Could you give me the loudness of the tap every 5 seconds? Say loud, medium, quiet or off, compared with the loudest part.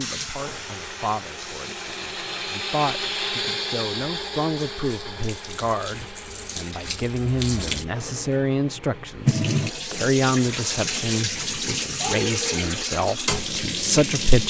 medium, loud, loud.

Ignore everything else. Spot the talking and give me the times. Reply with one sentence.
The talking can be heard from 0.0 to 14.4 s.